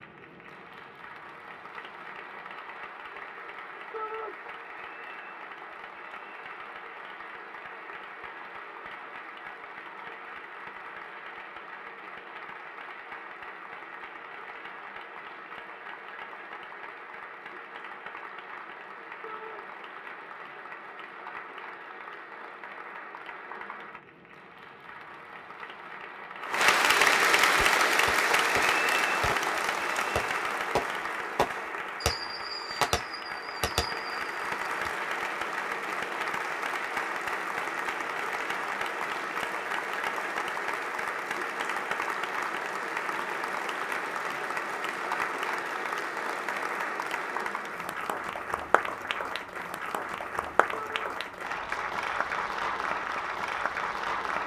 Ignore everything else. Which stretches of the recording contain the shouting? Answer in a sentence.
The shouting can be heard from 3.9 to 4.3 s, from 19.2 to 19.6 s and from 50.7 to 51.1 s.